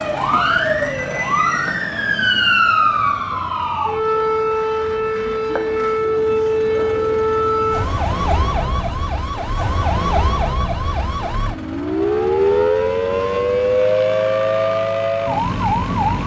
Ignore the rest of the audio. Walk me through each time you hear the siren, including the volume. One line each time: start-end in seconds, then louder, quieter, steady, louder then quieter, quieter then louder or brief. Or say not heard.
0.0-16.2 steady.